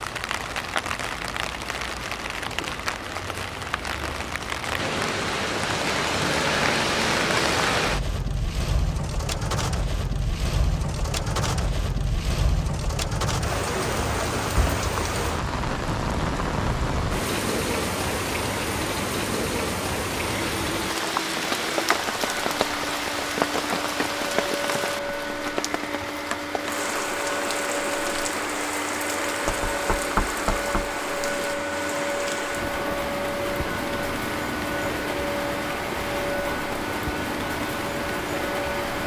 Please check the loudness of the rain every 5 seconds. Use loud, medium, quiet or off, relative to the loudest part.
medium, loud, loud, loud, loud, medium, medium, medium.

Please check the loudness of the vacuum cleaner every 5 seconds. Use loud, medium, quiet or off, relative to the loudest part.
off, off, off, off, loud, loud, loud, loud.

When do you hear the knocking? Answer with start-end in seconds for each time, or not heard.
29.4-30.9.